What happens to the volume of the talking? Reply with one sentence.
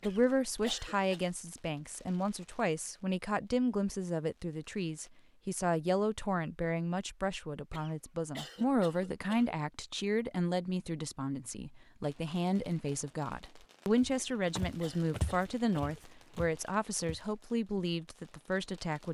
The volume of the talking stays about the same.